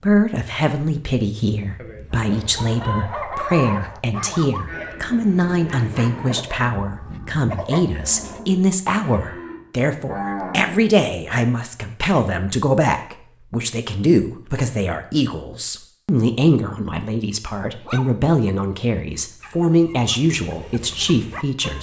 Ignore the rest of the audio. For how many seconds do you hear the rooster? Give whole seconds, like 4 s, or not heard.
2 s.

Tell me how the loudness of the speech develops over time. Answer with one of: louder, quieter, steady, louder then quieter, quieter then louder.
steady.